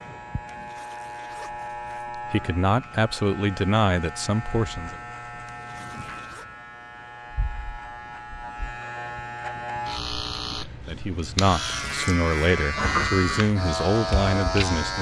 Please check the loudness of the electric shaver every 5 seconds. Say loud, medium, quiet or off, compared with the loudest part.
medium, medium, loud.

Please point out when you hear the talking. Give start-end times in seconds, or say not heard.
2.1-5.0, 10.8-14.9.